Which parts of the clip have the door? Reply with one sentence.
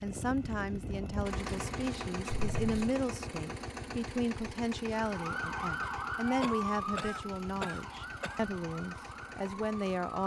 The door can't be heard in this clip.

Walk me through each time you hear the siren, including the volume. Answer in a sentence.
You can hear the siren from 5.0 to 10.1 s, getting quieter.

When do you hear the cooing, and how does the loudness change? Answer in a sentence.
You can't hear the cooing here.